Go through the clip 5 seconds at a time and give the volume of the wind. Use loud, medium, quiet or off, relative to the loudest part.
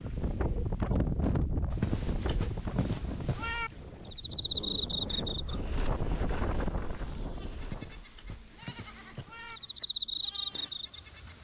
loud, loud, off.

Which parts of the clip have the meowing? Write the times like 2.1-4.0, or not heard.
1.7-3.7, 7.6-9.6.